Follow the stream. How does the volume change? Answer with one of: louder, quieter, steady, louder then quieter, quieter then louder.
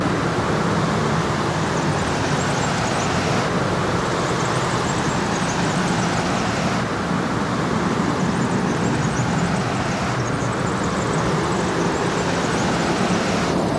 steady.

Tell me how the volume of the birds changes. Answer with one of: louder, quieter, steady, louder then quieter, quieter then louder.
steady.